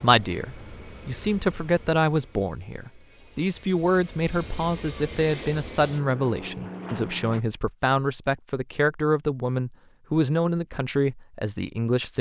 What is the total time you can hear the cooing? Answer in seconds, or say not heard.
not heard.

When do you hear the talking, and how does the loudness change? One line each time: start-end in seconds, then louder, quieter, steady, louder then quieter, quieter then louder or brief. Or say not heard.
0.0-12.1 steady.